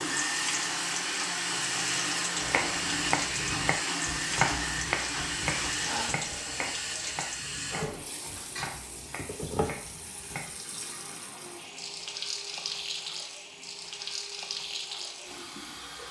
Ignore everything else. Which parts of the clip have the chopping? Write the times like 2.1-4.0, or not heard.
2.4-10.6.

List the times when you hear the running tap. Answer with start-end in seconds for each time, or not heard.
0.0-16.0.